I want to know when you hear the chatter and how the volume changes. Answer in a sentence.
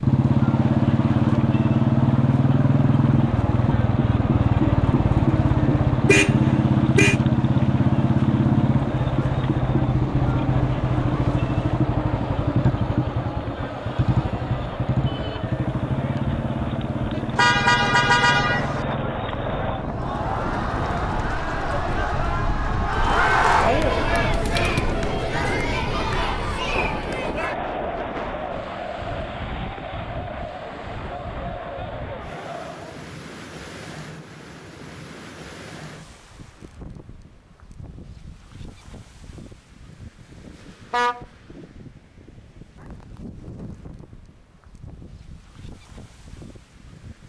The chatter can be heard from 0.1 to 33.1 s, getting louder then quieter.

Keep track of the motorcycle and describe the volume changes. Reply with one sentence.
The loudness of the motorcycle goes down.